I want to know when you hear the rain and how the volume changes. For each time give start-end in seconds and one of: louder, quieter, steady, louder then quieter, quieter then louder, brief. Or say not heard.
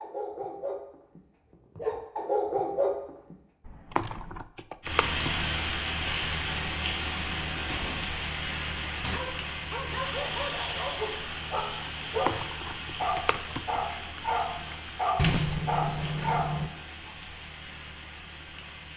4.8-18.9 quieter.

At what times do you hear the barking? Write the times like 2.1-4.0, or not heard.
0.0-3.4, 9.1-17.1.